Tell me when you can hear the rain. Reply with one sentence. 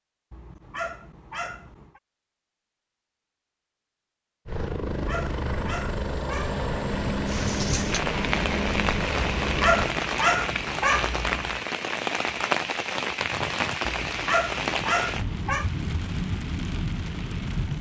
You can hear the rain from 7.2 to 17.7 s.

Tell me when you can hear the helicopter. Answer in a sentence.
The helicopter can be heard from 4.5 to 9.9 s.